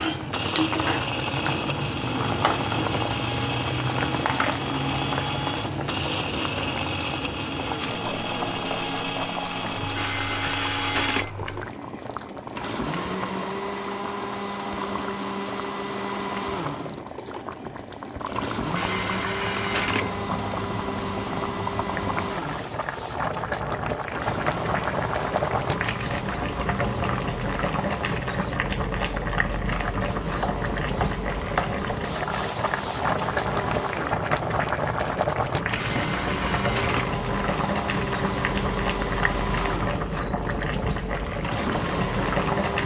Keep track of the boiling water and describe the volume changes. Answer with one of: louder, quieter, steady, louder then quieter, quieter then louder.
quieter then louder.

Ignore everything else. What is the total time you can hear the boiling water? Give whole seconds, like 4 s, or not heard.
43 s.